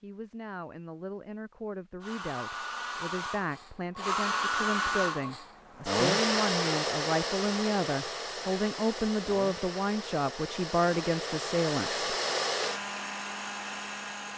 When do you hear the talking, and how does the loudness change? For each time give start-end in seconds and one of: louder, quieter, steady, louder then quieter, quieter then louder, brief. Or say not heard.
0.0-12.1 louder.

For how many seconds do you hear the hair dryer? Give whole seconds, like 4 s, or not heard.
12 s.